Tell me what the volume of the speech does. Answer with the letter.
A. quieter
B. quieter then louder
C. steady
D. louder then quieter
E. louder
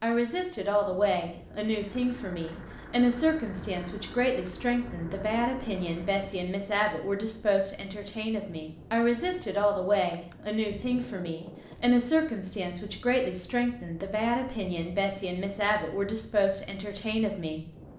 C.